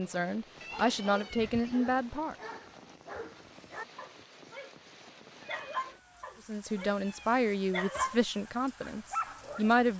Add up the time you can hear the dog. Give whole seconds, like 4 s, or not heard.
9 s.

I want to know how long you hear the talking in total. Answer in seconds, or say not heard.
6 s.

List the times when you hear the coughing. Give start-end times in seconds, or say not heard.
not heard.